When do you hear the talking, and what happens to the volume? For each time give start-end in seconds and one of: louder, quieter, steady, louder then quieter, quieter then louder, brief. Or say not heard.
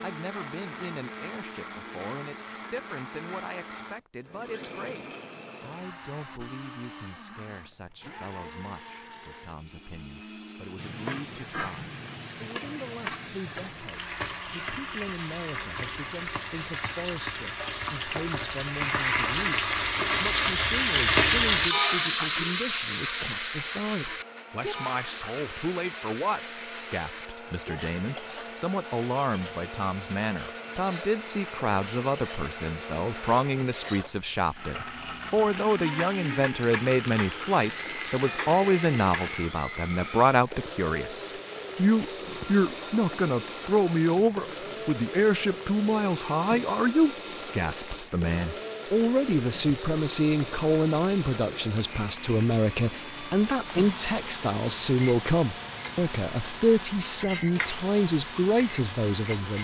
0.0-59.5 louder.